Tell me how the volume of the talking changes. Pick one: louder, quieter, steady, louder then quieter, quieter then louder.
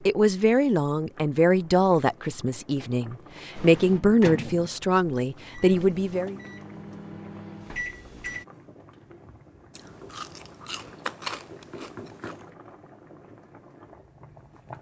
steady.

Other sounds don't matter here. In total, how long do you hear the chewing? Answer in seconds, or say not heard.
3 s.